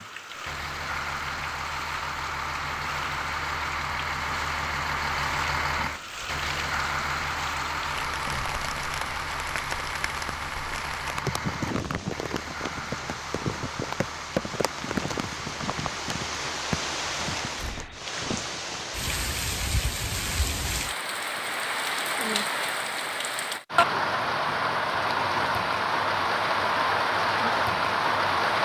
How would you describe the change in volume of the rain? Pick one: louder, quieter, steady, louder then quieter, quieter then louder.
louder.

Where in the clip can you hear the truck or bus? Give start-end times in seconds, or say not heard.
0.0-18.1.